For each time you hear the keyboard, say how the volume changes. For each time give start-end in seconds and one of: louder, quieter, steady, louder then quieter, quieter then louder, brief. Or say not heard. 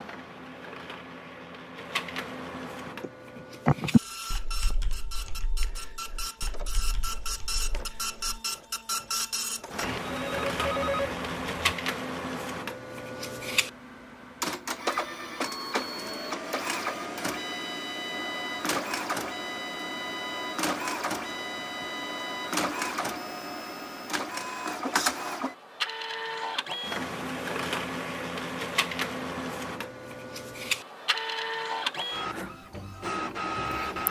2.9-8.2 quieter.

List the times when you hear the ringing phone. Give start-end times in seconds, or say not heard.
9.8-11.8.